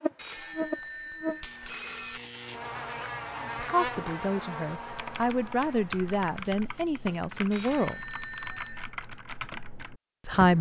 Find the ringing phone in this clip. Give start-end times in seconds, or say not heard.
0.1-2.2, 7.5-8.9.